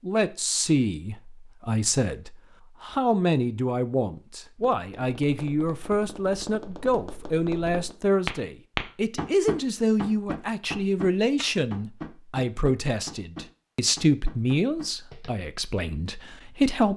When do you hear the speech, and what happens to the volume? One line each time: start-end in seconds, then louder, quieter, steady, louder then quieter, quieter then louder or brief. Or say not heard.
0.0-16.9 steady.